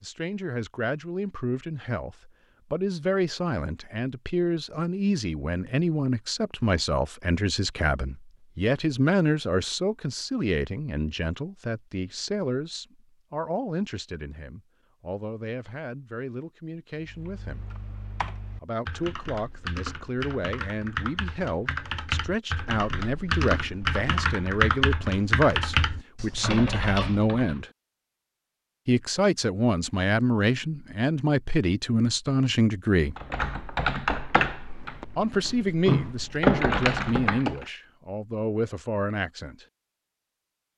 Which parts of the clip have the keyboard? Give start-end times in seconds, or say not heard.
17.0-27.6, 33.1-37.6.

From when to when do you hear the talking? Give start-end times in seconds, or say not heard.
0.0-17.6, 18.6-27.7, 28.9-33.1, 35.1-39.6.